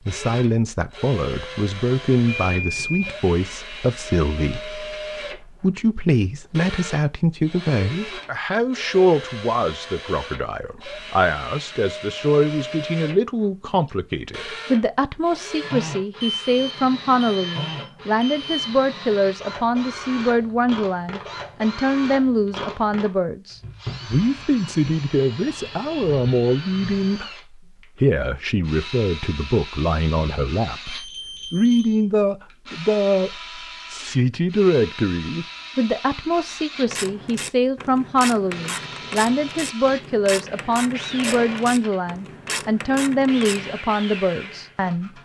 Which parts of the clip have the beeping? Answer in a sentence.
You can hear the beeping from 2.2 to 3.1 s, from 16.2 to 18.6 s and from 30.9 to 32.0 s.